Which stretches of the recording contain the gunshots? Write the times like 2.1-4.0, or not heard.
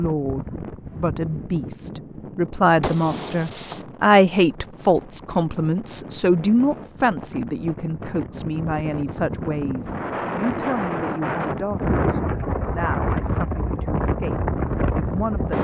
2.8-3.9.